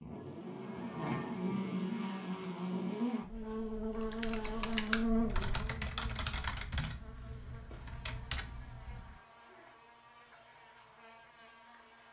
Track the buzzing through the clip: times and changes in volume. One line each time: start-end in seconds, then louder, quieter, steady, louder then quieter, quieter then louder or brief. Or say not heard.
0.0-12.0 quieter.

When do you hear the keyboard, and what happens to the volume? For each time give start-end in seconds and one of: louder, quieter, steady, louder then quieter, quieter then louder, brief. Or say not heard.
4.0-9.2 quieter then louder.